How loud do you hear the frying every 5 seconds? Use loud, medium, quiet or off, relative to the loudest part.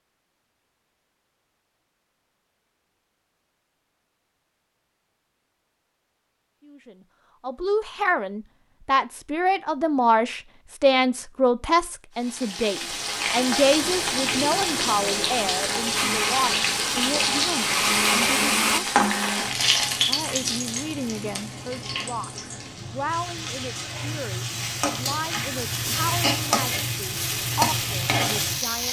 off, off, loud, loud, medium, loud.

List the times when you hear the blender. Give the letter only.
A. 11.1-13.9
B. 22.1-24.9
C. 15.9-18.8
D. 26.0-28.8
C.